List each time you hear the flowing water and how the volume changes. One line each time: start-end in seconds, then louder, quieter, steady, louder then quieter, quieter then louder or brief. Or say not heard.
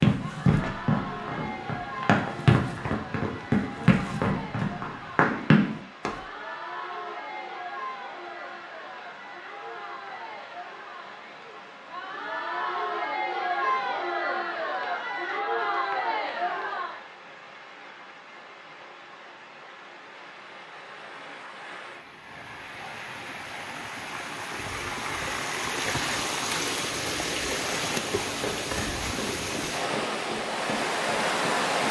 0.1-31.8 louder.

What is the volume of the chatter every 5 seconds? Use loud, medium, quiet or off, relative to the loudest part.
medium, medium, loud, loud, off, off, off.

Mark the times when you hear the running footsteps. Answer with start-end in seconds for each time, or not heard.
0.0-6.2, 28.4-31.8.